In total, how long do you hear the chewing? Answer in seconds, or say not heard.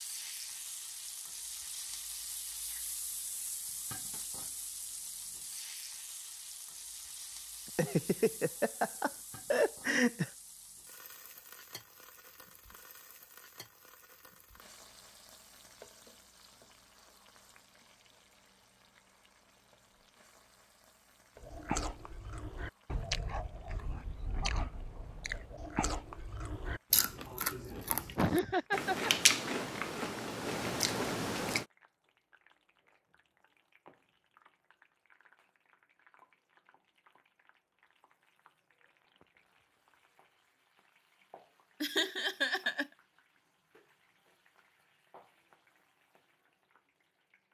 10 s.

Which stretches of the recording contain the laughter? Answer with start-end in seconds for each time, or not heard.
7.8-10.3, 28.1-29.1, 41.8-42.9.